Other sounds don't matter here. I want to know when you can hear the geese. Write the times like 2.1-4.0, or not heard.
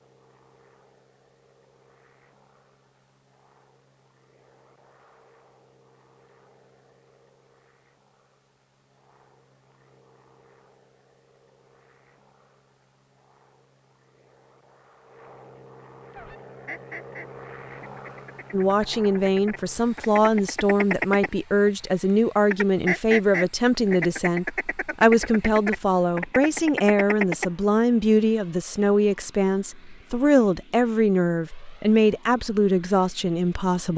16.1-21.7, 22.5-27.5.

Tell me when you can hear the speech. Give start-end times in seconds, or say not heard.
18.5-33.9.